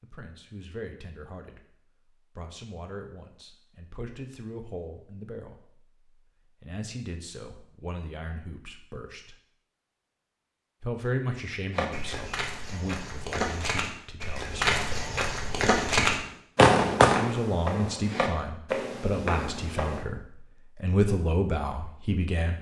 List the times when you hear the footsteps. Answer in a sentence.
You can hear the footsteps from 11.7 to 20.1 s.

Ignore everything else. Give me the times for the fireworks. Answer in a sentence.
The fireworks can be heard from 15.9 to 17.2 s.